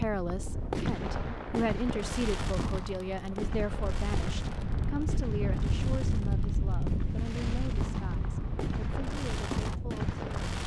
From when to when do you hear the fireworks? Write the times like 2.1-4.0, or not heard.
0.0-10.6.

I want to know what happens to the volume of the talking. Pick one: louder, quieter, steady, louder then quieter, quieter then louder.
quieter.